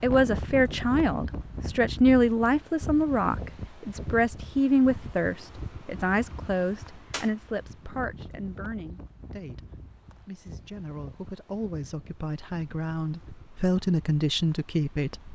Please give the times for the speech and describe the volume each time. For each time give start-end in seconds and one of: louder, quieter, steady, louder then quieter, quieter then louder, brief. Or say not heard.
0.0-15.3 quieter then louder.